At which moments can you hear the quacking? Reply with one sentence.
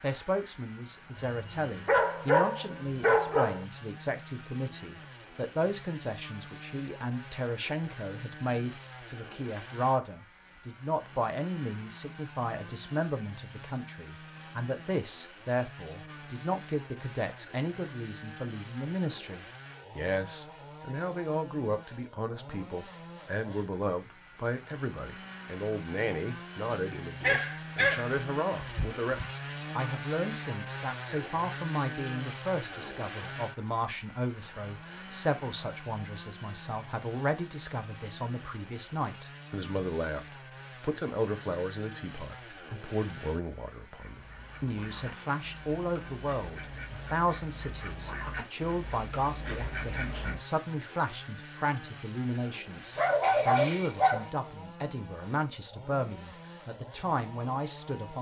You can hear the quacking from 43.9 to 50.4 s.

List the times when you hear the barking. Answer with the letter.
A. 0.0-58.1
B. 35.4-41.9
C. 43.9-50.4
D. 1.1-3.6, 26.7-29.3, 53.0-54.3
D.